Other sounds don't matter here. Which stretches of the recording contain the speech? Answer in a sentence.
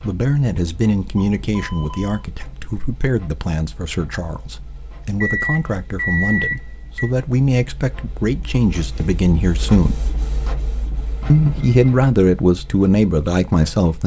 You can hear the speech from 0.0 to 10.0 s and from 11.3 to 14.0 s.